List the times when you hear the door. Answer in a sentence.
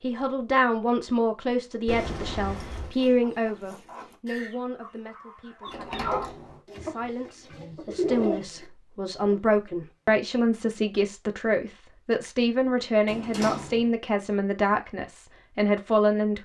You can hear the door from 1.9 to 2.9 s, from 5.7 to 6.6 s and from 13.1 to 13.9 s.